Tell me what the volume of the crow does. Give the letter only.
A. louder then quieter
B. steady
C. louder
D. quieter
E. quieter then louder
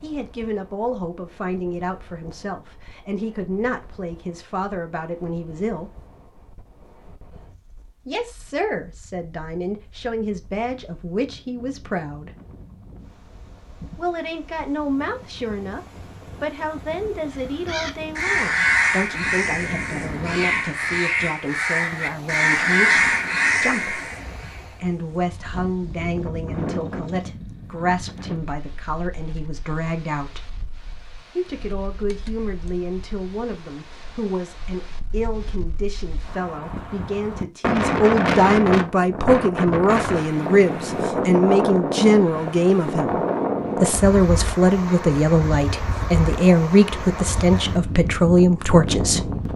E.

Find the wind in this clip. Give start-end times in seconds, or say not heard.
0.0-49.5.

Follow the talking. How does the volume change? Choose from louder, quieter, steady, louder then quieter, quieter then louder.
louder.